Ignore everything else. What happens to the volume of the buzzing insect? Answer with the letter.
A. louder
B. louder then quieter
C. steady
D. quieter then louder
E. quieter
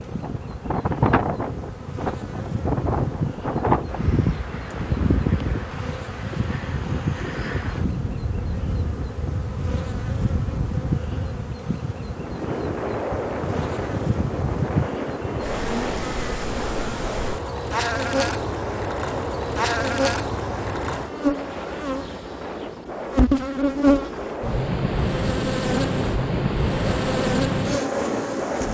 A.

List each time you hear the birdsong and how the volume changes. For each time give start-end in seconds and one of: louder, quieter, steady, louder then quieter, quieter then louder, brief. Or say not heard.
not heard.